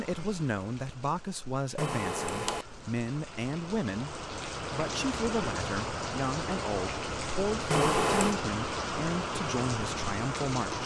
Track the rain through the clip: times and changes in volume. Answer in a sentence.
You can hear the rain from 0.0 to 10.8 s, getting louder.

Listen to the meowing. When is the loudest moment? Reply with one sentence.
The volume of the meowing peaks at 8 seconds.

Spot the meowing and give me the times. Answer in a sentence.
You can hear the meowing from 1.8 to 2.9 s and from 7.7 to 8.4 s.